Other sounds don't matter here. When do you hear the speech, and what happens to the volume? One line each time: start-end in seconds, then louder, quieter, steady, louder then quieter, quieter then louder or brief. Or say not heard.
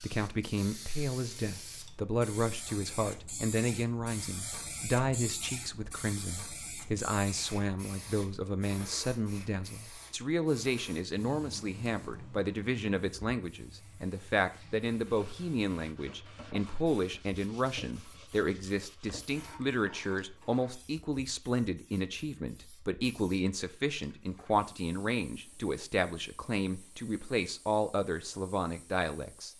0.0-29.5 steady.